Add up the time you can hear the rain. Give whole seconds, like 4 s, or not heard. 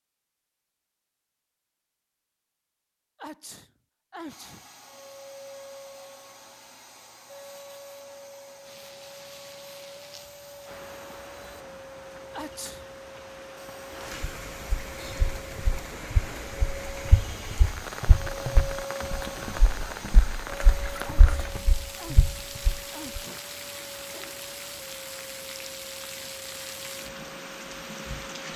20 s.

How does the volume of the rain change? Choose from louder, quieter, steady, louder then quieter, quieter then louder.
louder.